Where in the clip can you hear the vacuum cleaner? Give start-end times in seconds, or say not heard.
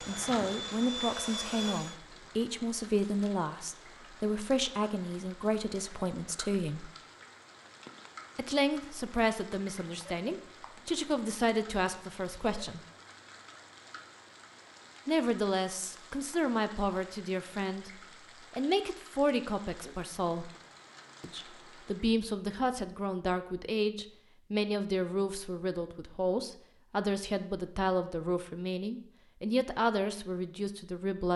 0.0-1.9.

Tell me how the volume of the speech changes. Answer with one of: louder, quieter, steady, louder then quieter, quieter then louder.
steady.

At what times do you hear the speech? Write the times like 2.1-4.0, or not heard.
0.0-6.9, 8.3-12.8, 15.1-20.5, 21.2-31.3.